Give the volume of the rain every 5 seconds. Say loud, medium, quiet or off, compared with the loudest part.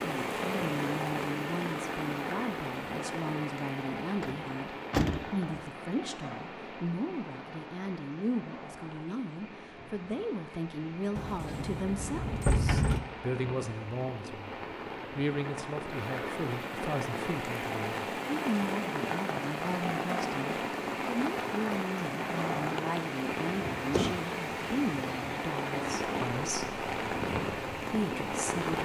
loud, medium, medium, loud, loud, loud.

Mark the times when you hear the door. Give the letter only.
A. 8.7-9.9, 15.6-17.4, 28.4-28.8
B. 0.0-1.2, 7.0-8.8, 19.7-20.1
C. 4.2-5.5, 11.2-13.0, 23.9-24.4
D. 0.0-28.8
C.